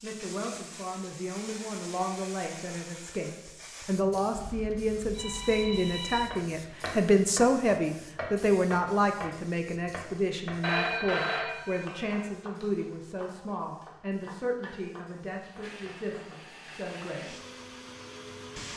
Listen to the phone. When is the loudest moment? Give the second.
11 s.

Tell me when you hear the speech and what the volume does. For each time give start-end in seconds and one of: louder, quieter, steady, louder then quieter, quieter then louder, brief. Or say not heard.
0.0-17.4 louder then quieter.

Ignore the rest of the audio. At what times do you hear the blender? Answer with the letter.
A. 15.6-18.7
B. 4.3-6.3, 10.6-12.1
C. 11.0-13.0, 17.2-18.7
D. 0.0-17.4
A.